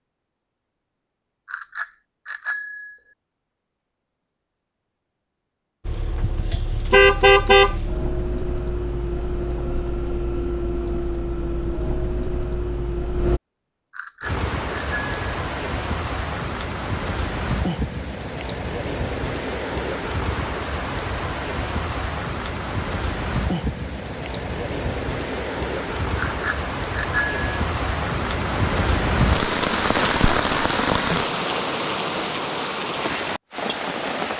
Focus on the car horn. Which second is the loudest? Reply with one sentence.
The volume of the car horn peaks at 7 seconds.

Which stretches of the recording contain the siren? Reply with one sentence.
The siren can't be heard in this clip.